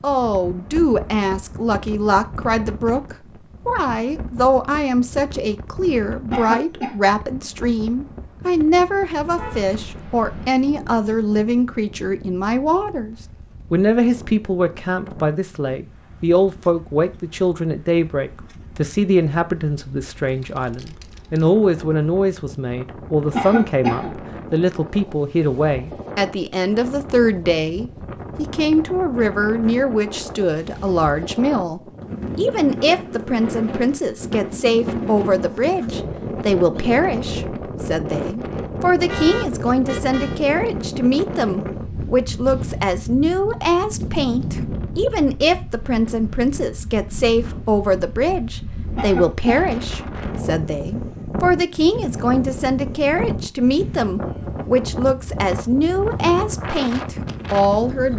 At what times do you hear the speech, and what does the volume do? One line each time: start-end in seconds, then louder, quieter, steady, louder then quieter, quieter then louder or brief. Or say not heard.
0.0-58.1 steady.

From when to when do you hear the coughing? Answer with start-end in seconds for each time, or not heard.
6.3-7.0, 23.3-24.1, 49.0-49.5.